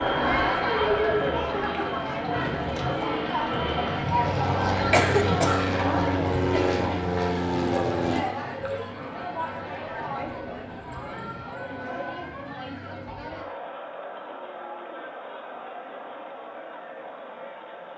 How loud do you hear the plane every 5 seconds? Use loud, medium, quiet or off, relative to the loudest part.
loud, loud, off, off.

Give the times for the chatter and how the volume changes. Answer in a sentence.
You can hear the chatter from 0.0 to 17.9 s, getting quieter.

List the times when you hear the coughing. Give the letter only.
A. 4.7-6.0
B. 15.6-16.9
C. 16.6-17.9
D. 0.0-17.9
A.